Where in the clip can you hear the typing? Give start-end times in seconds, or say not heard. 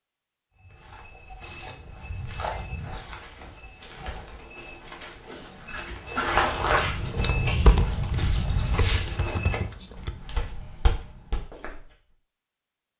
7.2-10.2.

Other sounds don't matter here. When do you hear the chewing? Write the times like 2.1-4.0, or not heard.
not heard.